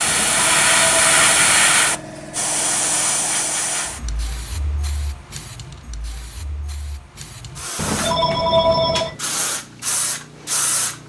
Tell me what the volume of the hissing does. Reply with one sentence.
The loudness of the hissing goes down, then up.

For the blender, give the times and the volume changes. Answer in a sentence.
The blender can't be heard in this clip.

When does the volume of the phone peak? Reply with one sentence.
The volume of the phone peaks at 9 seconds.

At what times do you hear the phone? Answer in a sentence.
The phone can be heard from 0.1 to 1.7 s and from 7.8 to 9.2 s.